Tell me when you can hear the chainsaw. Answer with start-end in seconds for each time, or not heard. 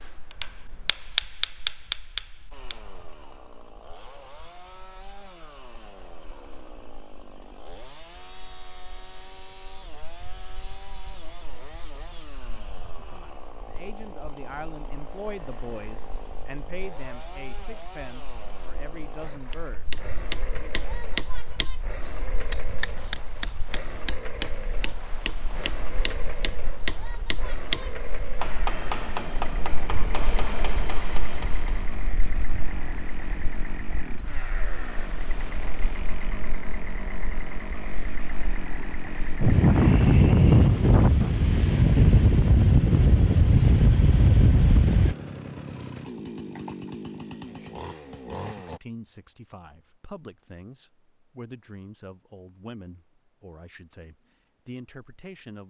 2.5-48.8.